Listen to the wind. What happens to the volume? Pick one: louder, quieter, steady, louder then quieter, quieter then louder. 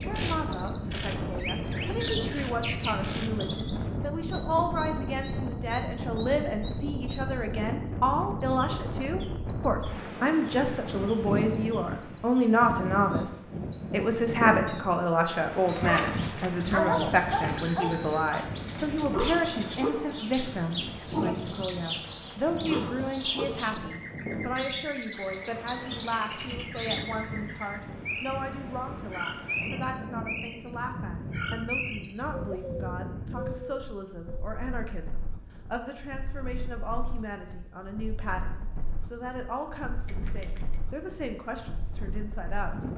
quieter.